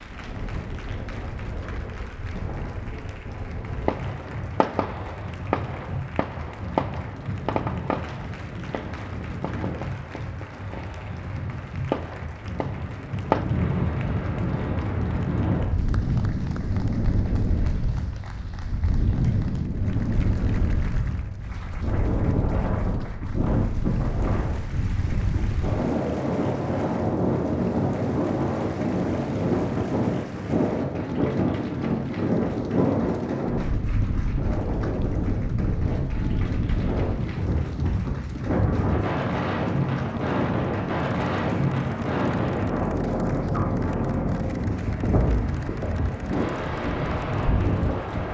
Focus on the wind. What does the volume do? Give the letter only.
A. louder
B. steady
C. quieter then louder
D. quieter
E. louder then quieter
A.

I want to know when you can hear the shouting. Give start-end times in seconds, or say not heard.
not heard.